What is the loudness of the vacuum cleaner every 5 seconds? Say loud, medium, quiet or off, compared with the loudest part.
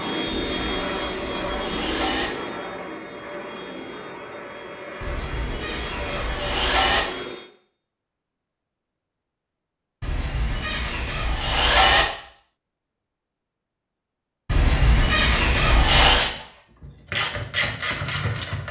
loud, loud, off, off.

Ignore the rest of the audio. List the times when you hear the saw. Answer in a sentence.
The saw can be heard from 0.3 to 2.2 s, from 5.0 to 7.0 s, from 10.0 to 12.1 s and from 14.4 to 16.2 s.